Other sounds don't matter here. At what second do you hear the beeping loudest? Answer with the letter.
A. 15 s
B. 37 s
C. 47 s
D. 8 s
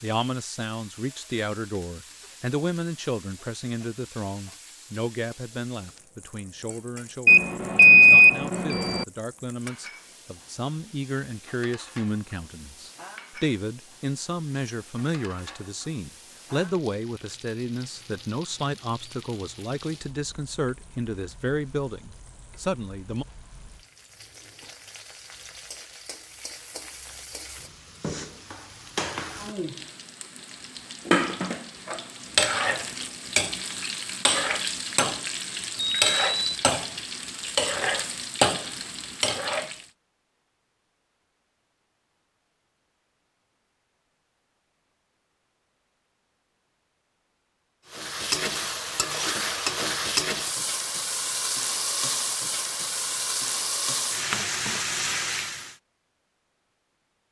D.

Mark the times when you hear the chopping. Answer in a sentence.
The chopping can't be heard in this clip.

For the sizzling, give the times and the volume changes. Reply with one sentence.
You can hear the sizzling from 0.0 to 39.9 s, getting louder; and from 47.9 to 55.8 s, at a steady volume.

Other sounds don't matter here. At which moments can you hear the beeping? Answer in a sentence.
You can hear the beeping from 7.2 to 9.1 s and from 36.0 to 36.6 s.